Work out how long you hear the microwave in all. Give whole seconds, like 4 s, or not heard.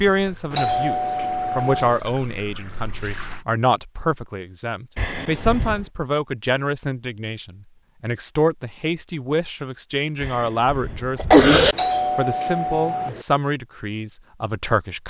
not heard.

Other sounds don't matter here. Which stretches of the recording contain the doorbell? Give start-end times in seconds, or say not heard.
0.1-2.0, 11.2-13.2.